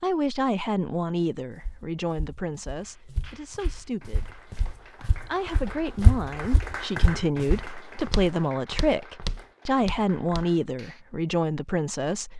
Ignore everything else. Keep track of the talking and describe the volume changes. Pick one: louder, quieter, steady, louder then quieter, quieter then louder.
quieter then louder.